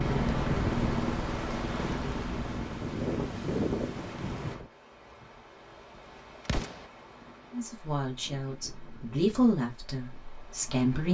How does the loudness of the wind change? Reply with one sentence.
The loudness of the wind goes down.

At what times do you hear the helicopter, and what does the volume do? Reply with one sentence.
You can hear the helicopter from 0.0 to 4.7 s, getting quieter.